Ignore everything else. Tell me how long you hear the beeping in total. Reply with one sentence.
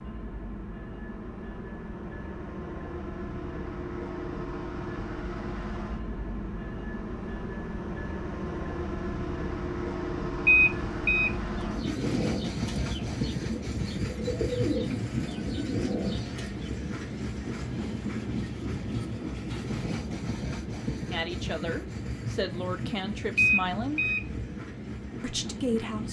The beeping can be heard for 2 seconds in total.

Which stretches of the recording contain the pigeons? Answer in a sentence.
The pigeons can be heard from 11.4 to 16.6 s.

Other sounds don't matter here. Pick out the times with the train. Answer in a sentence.
The train can be heard from 0.0 to 26.0 s.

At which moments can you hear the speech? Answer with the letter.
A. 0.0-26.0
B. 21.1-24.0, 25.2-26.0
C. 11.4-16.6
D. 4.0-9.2
B.